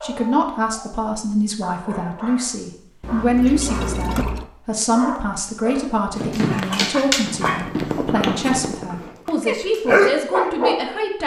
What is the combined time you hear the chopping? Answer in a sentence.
You can't hear the chopping here.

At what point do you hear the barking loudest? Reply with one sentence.
The loudest moment of the barking is at 10 seconds.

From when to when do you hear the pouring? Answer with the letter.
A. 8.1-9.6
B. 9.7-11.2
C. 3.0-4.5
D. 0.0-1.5
C.